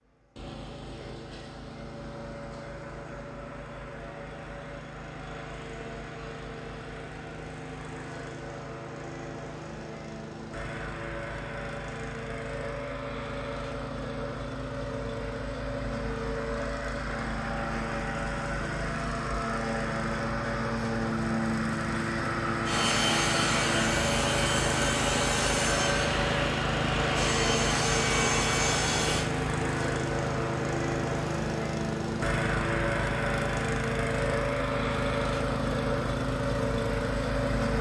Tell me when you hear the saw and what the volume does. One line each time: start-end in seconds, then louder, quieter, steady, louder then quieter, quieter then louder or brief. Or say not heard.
22.6-29.3 steady.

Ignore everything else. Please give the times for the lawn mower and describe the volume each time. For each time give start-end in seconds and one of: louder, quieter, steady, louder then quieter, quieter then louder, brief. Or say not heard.
0.0-37.7 louder.